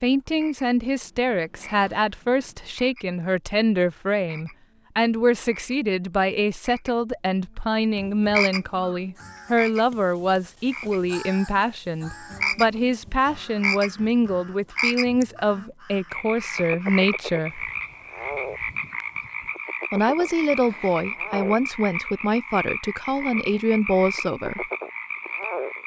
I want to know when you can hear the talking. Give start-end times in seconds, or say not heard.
0.0-17.6, 19.9-24.6.